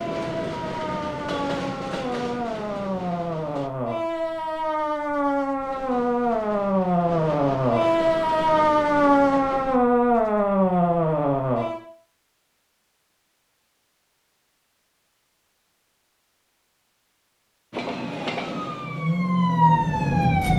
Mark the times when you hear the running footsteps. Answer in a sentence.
You can't hear the running footsteps here.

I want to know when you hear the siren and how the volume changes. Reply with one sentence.
You can hear the siren from 0.0 to 11.8 s, getting louder; and briefly from 17.9 to 20.5 s.